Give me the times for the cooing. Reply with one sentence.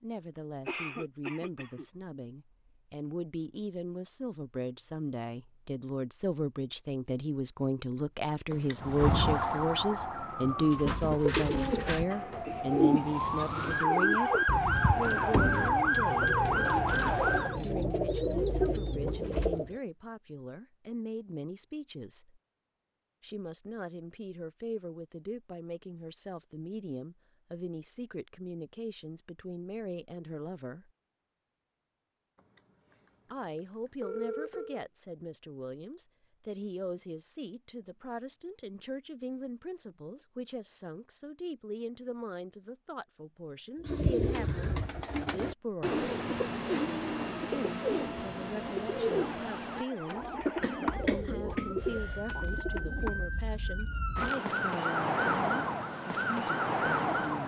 You can hear the cooing from 10.6 to 19.8 s and from 43.8 to 53.2 s.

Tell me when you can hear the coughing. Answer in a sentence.
The coughing can be heard from 0.7 to 1.9 s and from 50.5 to 52.2 s.